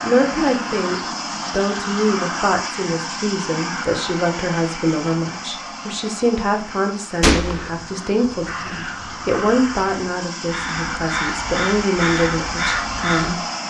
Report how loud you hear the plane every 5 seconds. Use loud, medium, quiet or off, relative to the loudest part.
loud, medium, loud.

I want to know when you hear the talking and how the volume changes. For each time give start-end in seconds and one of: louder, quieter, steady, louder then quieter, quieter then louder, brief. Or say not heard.
0.0-13.4 steady.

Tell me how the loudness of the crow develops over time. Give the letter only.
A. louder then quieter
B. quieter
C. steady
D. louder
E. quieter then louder
D.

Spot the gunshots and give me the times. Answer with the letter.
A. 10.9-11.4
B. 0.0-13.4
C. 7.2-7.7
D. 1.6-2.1
C.